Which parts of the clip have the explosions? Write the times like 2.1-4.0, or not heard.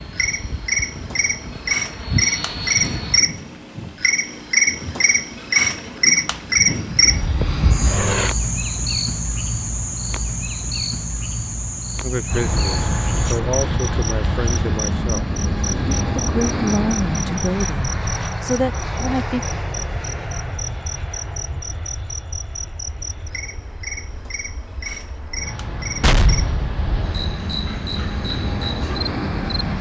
26.0-27.4.